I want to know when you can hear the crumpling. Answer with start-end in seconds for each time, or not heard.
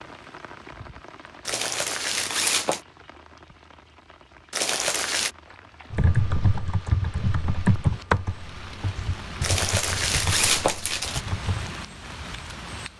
1.4-2.8, 4.5-5.3, 9.4-11.2.